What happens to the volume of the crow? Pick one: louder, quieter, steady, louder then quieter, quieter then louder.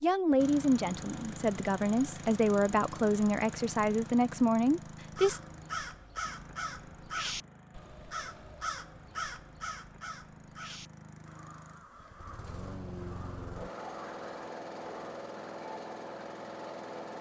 quieter.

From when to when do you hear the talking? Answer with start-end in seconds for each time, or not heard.
0.0-5.4.